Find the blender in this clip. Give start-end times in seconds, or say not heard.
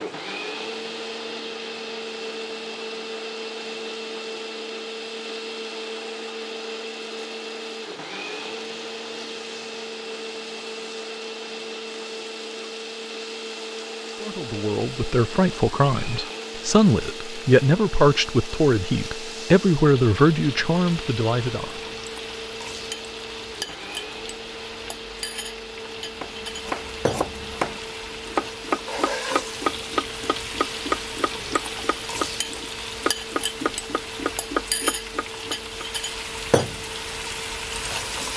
0.0-38.3.